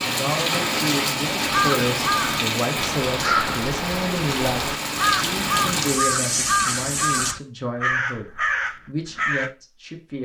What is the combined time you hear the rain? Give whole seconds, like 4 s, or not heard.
7 s.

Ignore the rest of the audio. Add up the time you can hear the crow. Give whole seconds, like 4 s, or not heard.
8 s.